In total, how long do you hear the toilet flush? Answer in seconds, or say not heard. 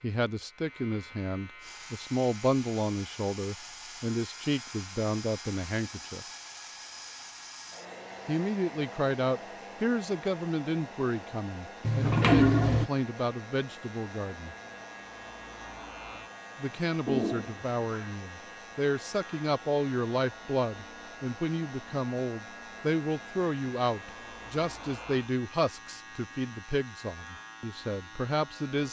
2 s.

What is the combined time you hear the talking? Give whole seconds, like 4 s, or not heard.
25 s.